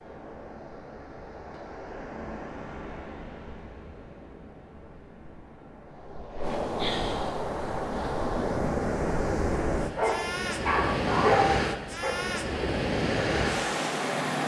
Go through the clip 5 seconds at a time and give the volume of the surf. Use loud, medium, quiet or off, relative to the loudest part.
quiet, loud, loud.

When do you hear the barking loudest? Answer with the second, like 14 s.
11 s.